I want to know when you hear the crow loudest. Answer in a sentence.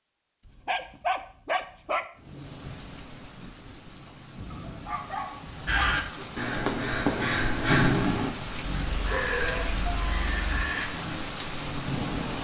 The volume of the crow peaks at 8 seconds.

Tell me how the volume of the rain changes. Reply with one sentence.
The loudness of the rain goes up.